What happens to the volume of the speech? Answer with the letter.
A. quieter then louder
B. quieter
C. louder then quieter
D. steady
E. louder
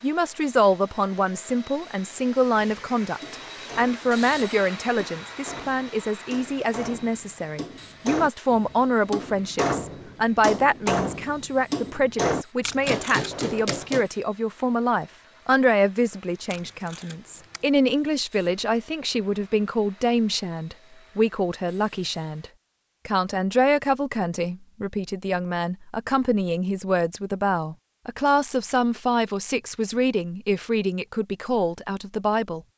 D.